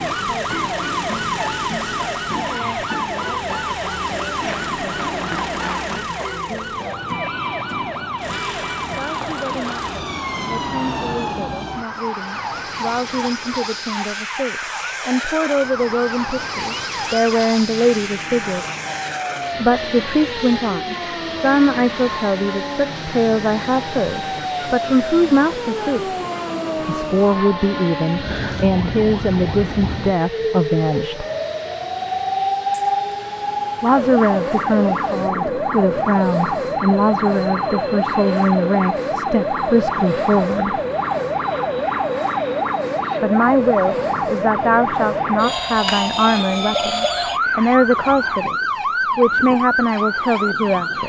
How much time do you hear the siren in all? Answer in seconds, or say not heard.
51 s.